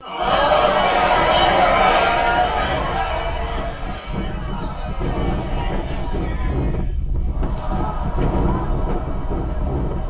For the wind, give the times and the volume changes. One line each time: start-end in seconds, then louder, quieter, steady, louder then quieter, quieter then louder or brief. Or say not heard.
0.0-10.0 louder.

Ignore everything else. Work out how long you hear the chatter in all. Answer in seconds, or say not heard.
10 s.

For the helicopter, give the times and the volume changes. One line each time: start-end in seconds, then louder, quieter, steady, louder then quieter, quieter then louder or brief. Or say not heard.
not heard.